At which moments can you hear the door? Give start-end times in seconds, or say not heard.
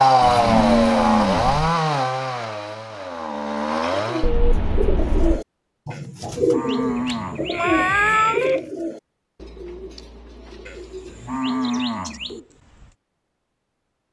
not heard.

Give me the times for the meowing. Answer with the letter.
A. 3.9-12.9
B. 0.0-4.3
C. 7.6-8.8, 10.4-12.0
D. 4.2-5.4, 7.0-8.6
D.